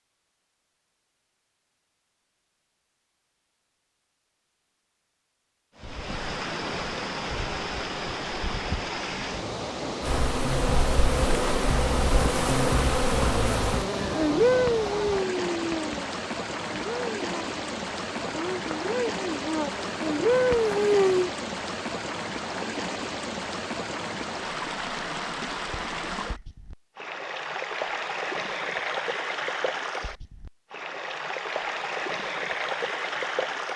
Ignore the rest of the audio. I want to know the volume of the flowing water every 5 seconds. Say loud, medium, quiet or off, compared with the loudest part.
off, loud, loud, loud, loud, loud, loud.